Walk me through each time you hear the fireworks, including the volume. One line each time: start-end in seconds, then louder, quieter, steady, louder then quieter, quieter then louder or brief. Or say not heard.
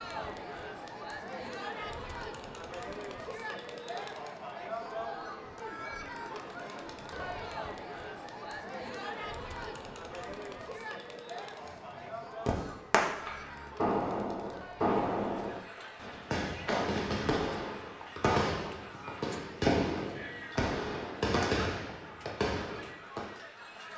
11.7-23.3 steady.